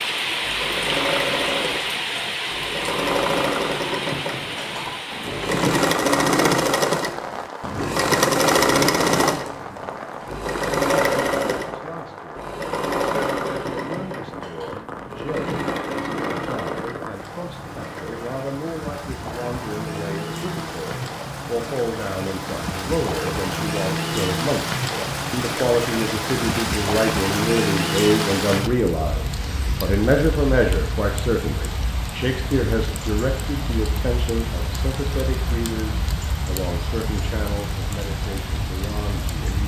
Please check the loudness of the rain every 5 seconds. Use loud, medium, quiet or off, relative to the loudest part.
loud, medium, medium, medium, loud, loud, medium, medium.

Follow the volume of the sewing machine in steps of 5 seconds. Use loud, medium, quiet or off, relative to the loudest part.
medium, loud, medium, medium, off, off, off, off.